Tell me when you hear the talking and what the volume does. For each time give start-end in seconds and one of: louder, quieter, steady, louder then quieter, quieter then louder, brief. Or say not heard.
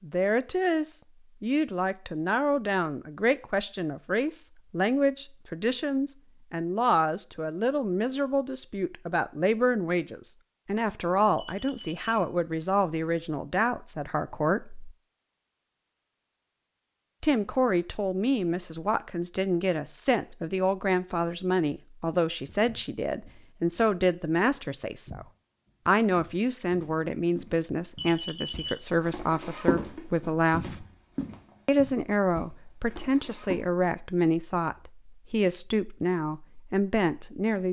0.0-14.9 steady
17.2-25.2 steady
25.9-30.9 steady
31.6-37.6 steady.